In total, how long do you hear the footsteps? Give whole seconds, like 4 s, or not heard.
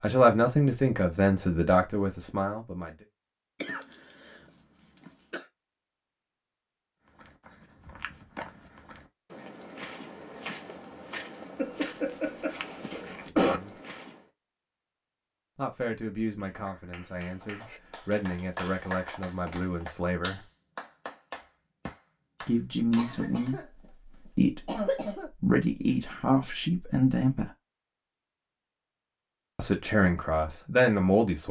7 s.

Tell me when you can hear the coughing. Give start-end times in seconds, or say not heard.
3.6-5.5, 11.6-13.6, 22.9-23.6, 24.6-25.3.